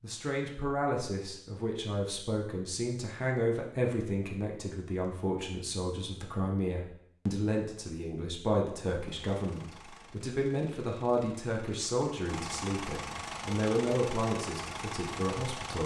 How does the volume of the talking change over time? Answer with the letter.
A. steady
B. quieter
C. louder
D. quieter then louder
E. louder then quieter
A.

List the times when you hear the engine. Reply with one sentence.
The engine can be heard from 8.9 to 15.8 s.